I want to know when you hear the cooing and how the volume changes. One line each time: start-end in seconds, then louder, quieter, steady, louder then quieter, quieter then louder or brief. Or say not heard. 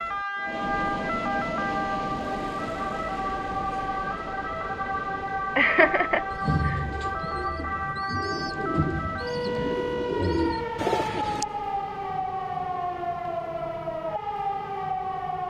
6.3-11.4 louder.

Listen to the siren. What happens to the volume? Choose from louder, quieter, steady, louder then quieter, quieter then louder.
steady.